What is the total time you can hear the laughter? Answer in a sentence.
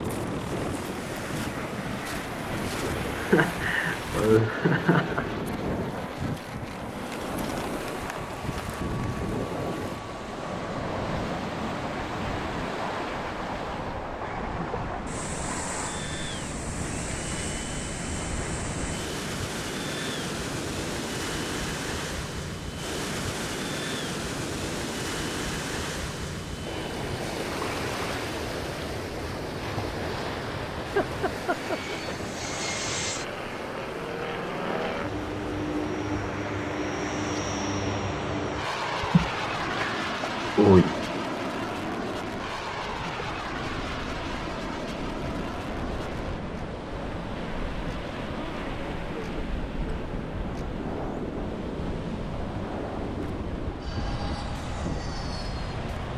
You can hear the laughter for 5 seconds altogether.